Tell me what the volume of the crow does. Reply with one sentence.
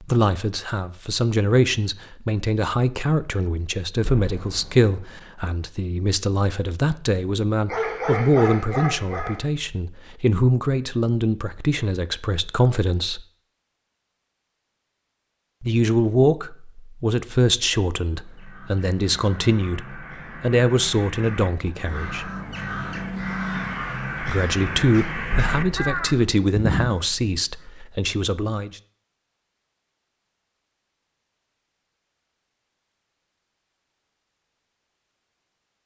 The loudness of the crow goes up.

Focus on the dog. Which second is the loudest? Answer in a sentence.
The loudest moment of the dog is at 8 seconds.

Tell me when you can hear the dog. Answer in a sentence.
The dog can be heard from 7.7 to 9.4 s.